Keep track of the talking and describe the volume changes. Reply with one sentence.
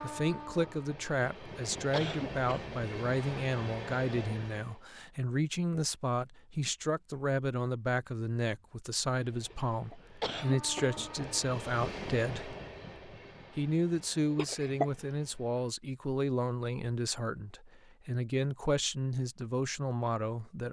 The loudness of the talking stays about the same.